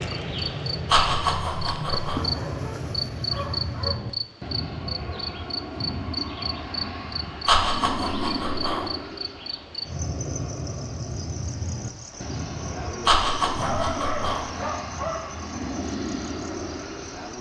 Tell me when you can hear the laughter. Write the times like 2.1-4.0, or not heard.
0.9-2.2, 7.5-8.9, 13.1-14.5.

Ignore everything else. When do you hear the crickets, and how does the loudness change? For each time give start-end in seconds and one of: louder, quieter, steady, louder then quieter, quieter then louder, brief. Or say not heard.
0.0-17.3 quieter.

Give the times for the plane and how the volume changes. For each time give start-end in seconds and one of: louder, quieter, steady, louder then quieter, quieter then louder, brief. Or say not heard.
0.0-17.3 steady.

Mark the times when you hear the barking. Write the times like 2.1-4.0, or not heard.
1.9-4.0, 13.6-15.4.